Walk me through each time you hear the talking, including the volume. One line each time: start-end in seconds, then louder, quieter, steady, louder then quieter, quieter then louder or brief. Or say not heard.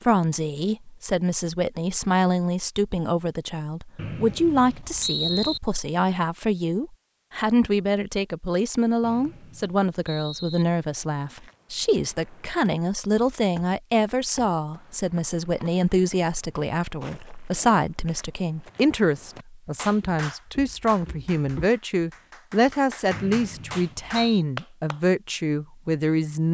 0.0-26.4 steady.